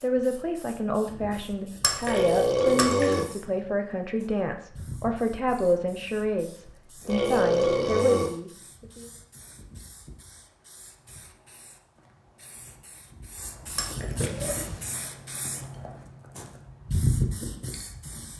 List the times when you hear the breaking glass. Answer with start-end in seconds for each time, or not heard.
1.8-3.4, 13.8-14.3.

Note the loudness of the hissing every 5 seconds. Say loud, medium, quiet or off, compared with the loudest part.
quiet, quiet, medium, loud.